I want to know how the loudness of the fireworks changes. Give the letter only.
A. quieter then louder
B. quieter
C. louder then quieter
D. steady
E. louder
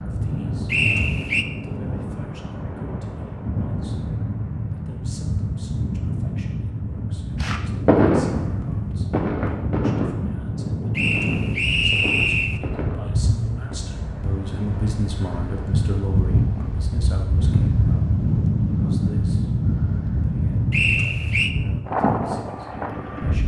B.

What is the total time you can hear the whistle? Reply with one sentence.
The whistle can be heard for 3 seconds in total.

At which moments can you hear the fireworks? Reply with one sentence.
You can hear the fireworks from 7.4 to 13.8 s.